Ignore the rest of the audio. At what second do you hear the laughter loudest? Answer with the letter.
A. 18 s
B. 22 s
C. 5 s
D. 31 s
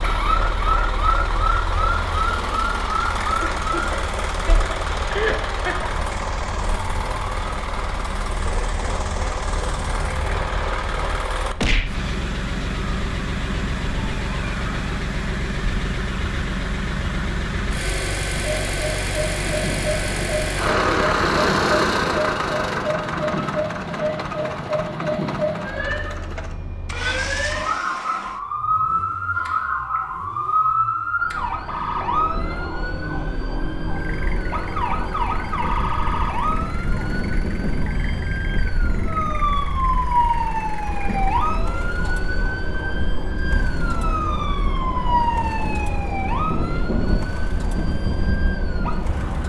C.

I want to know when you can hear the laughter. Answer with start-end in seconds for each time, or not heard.
3.4-5.9.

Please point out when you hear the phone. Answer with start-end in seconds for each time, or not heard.
not heard.